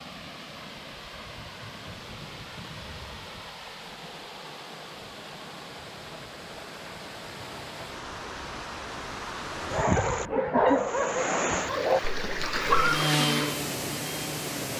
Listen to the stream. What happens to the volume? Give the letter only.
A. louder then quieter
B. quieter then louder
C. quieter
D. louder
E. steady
D.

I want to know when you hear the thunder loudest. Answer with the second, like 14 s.
3 s.